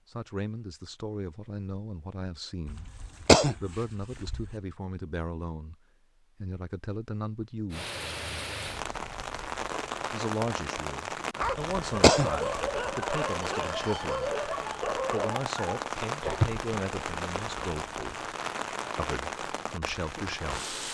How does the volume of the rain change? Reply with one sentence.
The loudness of the rain stays about the same.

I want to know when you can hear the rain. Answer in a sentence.
The rain can be heard from 7.7 to 20.8 s.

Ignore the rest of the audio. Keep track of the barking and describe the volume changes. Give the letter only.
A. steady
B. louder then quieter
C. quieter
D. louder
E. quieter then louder
C.